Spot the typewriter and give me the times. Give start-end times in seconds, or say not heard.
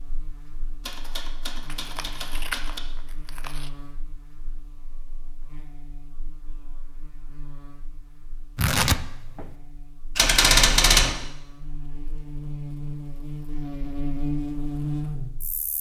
0.8-2.8, 10.2-11.2.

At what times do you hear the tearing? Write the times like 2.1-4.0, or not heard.
1.6-3.7, 8.6-9.4.